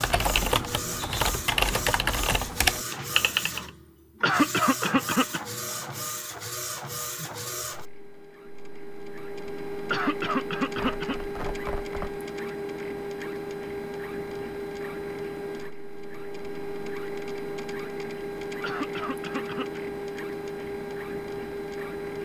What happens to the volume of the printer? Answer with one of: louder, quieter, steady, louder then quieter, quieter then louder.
steady.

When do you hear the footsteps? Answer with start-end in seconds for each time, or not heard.
not heard.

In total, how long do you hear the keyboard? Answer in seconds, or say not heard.
4 s.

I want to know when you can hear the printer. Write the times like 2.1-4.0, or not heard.
0.0-22.2.